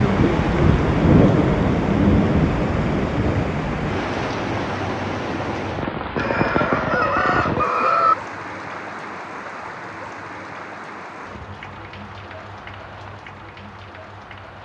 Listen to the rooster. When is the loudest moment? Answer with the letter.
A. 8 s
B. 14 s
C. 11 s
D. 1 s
A.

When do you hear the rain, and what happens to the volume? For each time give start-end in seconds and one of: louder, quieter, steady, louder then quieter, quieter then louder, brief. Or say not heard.
0.0-14.6 quieter.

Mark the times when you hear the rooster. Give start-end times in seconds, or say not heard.
6.2-8.2.